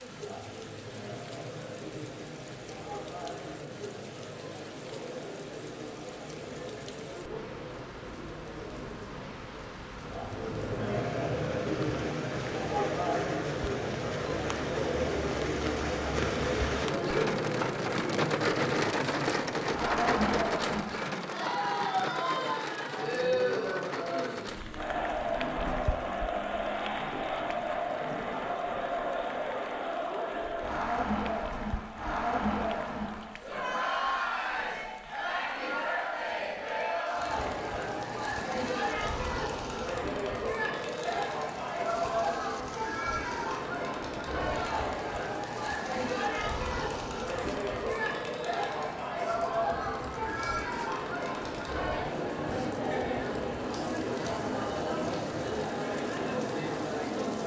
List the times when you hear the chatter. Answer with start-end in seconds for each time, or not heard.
0.0-57.4.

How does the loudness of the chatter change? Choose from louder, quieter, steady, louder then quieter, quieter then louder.
louder.